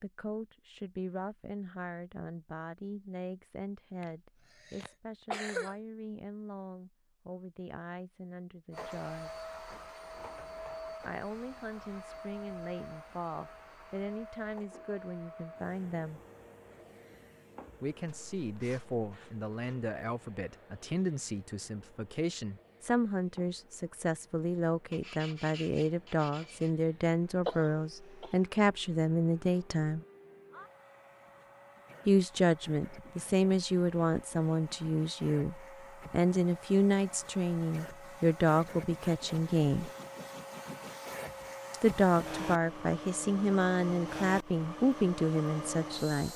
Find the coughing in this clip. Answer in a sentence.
The coughing can be heard from 4.0 to 5.8 s and from 27.4 to 28.4 s.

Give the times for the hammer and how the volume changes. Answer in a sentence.
You can't hear the hammer here.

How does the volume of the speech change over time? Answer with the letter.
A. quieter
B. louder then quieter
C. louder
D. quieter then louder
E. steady
C.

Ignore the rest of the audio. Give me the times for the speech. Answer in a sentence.
You can hear the speech from 0.0 to 9.4 s, from 11.0 to 16.2 s, from 17.8 to 30.1 s, from 32.0 to 39.9 s and from 41.7 to 46.3 s.